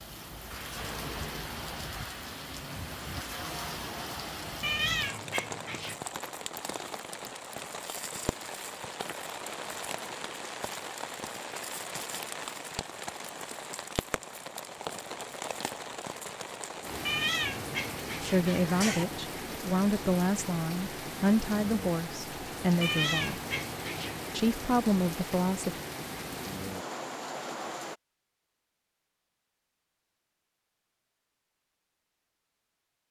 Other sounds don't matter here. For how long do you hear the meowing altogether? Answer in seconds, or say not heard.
5 s.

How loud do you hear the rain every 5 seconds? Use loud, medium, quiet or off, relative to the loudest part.
loud, loud, loud, loud, loud, loud, off.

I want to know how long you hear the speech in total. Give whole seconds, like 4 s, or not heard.
7 s.